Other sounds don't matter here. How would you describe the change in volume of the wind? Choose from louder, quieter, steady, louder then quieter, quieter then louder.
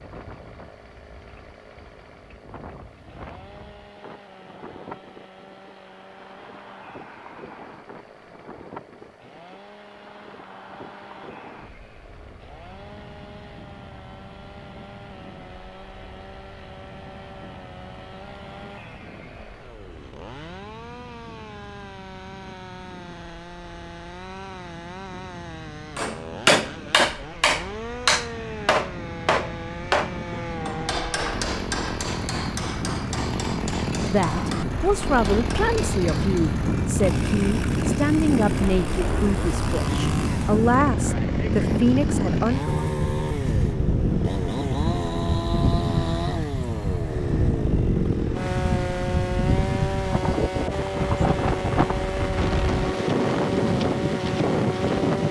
louder.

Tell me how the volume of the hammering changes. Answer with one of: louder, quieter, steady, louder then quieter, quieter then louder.
quieter.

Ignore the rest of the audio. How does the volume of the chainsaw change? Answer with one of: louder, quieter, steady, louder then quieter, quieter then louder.
louder.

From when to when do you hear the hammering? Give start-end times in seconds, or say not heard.
25.9-36.5.